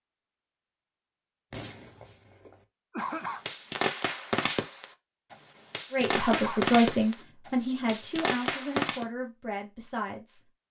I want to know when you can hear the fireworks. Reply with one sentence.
The fireworks can be heard from 1.5 to 9.1 s.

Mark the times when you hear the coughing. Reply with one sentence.
You can hear the coughing from 2.9 to 3.5 s and from 6.1 to 6.8 s.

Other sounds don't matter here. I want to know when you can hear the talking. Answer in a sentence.
The talking can be heard from 5.9 to 10.4 s.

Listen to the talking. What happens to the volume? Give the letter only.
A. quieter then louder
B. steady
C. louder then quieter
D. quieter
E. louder
D.